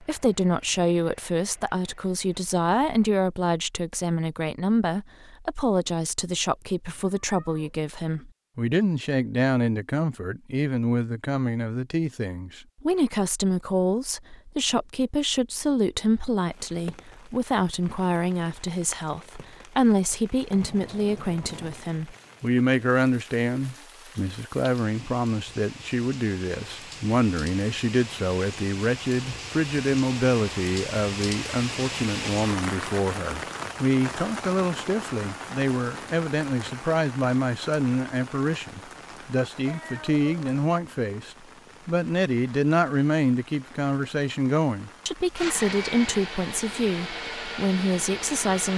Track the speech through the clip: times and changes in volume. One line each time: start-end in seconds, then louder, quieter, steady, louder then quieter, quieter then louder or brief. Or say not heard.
0.0-48.7 steady.